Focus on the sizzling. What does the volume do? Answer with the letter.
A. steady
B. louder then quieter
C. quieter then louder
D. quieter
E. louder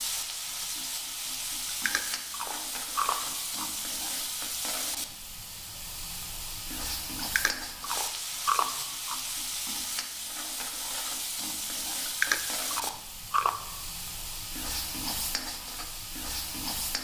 A.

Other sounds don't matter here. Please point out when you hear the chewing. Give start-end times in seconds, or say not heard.
1.6-3.6, 7.2-9.2, 12.1-13.6.